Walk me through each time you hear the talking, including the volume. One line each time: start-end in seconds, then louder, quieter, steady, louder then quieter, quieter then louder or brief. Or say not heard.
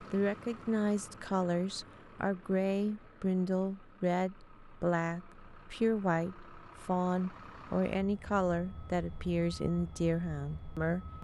0.0-11.1 steady.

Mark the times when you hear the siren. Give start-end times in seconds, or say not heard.
not heard.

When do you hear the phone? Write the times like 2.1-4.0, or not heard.
not heard.